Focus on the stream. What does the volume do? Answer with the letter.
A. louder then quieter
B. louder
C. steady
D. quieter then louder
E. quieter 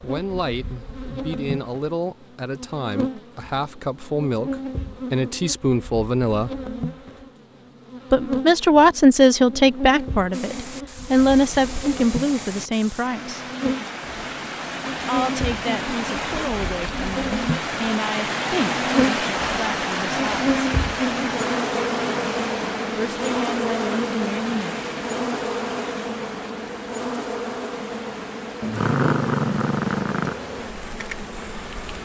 A.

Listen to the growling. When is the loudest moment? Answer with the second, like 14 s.
29 s.